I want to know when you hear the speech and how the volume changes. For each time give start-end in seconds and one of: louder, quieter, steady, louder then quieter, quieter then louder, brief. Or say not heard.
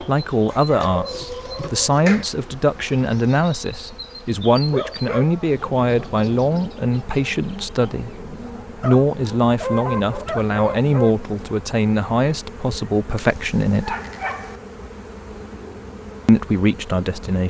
0.0-13.9 steady
16.2-17.4 brief.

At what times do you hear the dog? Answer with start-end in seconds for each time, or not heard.
0.7-2.2, 4.7-6.2, 8.8-11.2, 13.2-14.6.